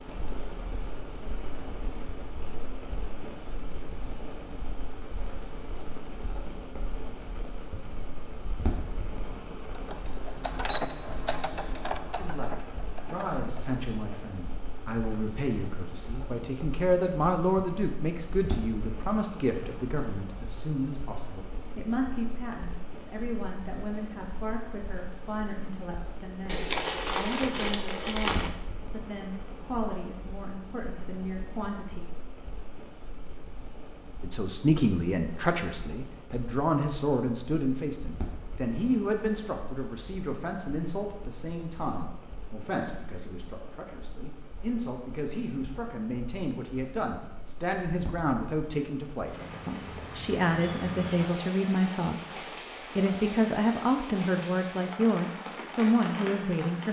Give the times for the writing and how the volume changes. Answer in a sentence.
You can't hear the writing here.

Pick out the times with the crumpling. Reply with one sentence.
You can hear the crumpling from 26.4 to 28.5 s.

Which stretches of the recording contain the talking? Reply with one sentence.
The talking can be heard from 12.2 to 32.0 s and from 34.2 to 56.8 s.